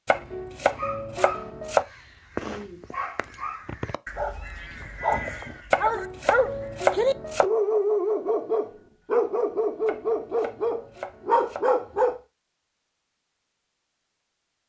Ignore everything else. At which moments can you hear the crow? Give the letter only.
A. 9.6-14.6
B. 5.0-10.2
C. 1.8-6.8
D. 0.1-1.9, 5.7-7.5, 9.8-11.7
C.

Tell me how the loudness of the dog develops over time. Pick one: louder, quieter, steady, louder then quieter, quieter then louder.
louder.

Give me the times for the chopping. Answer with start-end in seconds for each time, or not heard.
0.1-1.9, 5.7-7.5, 9.8-11.7.